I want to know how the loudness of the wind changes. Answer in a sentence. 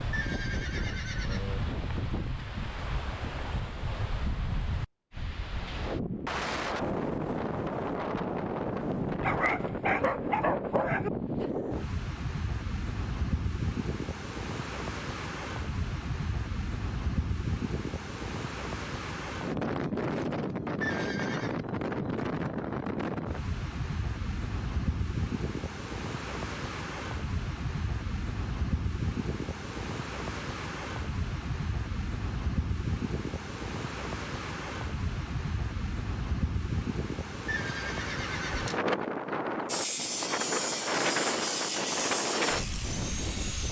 The volume of the wind stays about the same.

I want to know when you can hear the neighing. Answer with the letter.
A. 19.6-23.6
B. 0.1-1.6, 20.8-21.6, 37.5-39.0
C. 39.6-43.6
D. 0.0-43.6
B.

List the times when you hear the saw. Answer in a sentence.
You can hear the saw from 39.6 to 43.6 s.